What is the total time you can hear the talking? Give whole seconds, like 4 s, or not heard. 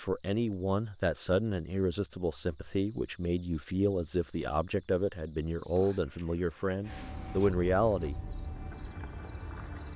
8 s.